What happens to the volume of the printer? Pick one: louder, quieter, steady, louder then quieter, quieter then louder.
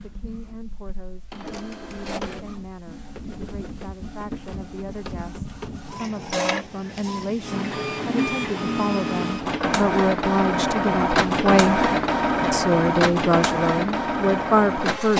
louder.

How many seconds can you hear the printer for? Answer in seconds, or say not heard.
15 s.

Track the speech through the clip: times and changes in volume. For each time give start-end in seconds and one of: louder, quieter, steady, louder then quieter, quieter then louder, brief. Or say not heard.
0.0-11.8 louder
12.5-15.1 brief.